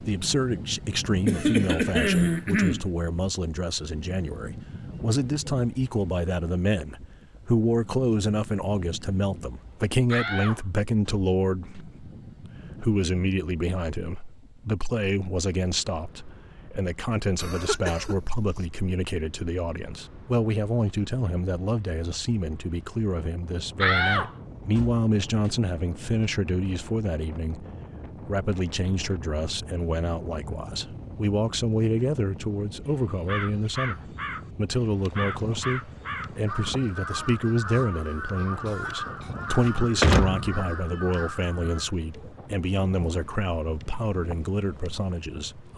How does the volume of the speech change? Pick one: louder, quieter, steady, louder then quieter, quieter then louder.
steady.